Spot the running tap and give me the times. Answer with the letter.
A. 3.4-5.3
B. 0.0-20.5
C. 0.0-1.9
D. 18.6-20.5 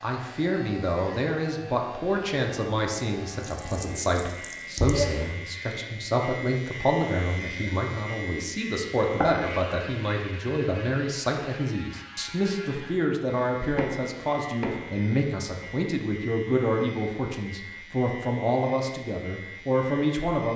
A.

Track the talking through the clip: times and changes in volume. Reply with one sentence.
You can hear the talking from 0.0 to 20.5 s, at a steady volume.